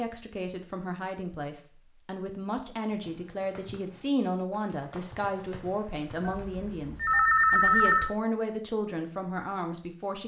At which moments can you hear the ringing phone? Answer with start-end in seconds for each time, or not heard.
6.2-8.2.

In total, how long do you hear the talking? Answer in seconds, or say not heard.
10 s.